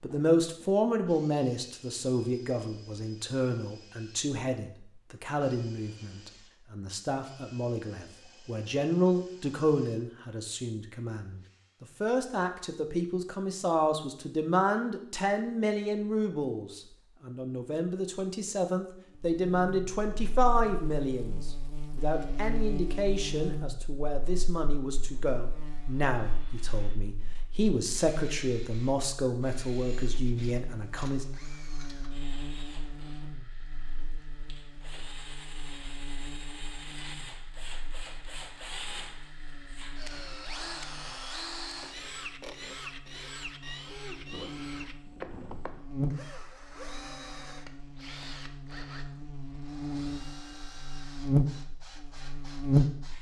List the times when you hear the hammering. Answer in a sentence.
The hammering can't be heard in this clip.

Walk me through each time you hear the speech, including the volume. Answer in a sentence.
You can hear the speech from 0.0 to 31.2 s, at a steady volume.